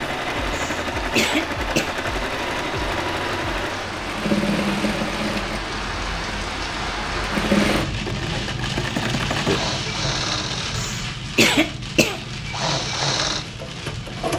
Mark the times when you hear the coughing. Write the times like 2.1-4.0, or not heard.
0.5-1.9, 10.8-12.2.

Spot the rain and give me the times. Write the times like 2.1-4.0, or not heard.
0.0-14.3.